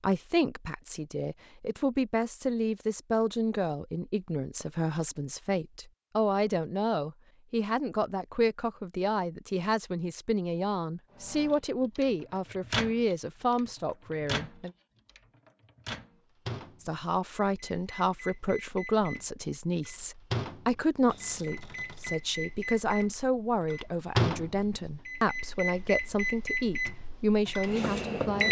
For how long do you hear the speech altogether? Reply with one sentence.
The speech can be heard for 26 seconds in total.